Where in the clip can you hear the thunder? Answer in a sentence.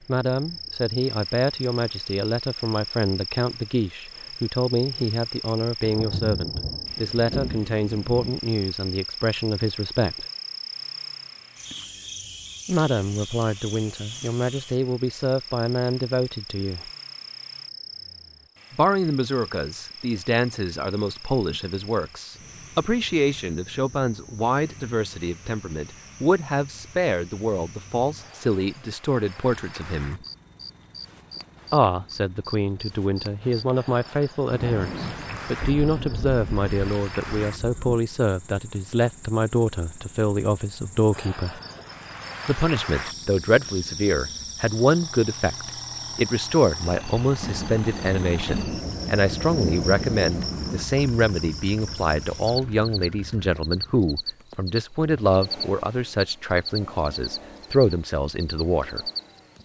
The thunder can be heard from 5.8 to 8.3 s, from 34.5 to 38.0 s and from 47.4 to 50.9 s.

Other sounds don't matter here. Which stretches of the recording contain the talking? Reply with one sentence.
You can hear the talking from 0.1 to 10.2 s, from 12.7 to 16.9 s, from 18.7 to 30.2 s, from 31.7 to 41.6 s and from 42.5 to 59.0 s.